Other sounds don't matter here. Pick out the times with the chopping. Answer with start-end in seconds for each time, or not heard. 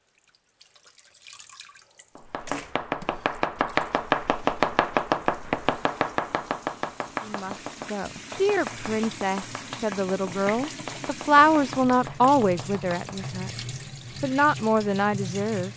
2.1-13.3.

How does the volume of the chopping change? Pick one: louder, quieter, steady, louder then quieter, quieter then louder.
quieter.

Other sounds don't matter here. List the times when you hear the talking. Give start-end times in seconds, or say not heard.
7.2-15.7.